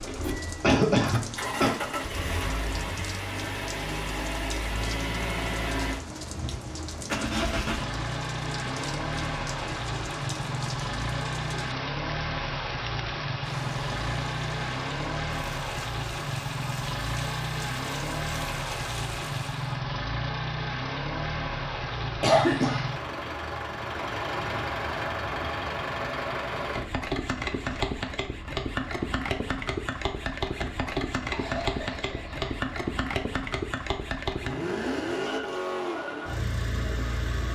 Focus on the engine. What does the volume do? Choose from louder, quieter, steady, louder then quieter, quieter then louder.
steady.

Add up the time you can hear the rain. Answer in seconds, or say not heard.
20 s.